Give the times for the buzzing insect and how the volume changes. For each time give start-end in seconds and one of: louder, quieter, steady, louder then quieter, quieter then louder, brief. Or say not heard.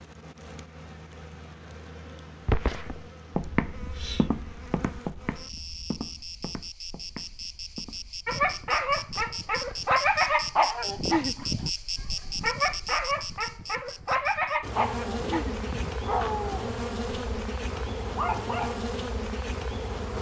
0.0-20.1 louder.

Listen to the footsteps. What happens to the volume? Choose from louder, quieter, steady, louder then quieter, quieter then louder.
quieter.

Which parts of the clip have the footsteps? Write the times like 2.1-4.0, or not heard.
2.5-9.9.